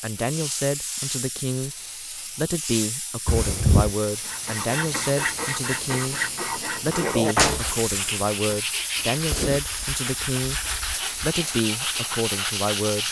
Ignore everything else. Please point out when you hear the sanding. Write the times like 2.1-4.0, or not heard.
4.2-13.0.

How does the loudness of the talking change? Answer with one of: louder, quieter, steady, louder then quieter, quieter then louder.
steady.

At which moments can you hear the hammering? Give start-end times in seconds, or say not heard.
not heard.